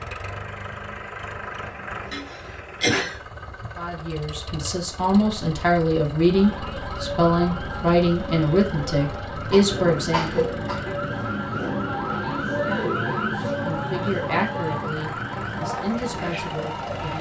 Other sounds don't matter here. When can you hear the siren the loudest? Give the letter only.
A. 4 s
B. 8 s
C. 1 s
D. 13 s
D.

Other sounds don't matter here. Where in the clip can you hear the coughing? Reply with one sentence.
The coughing can be heard from 2.1 to 3.2 s and from 9.5 to 10.9 s.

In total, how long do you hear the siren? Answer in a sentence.
The siren can be heard for 11 seconds in total.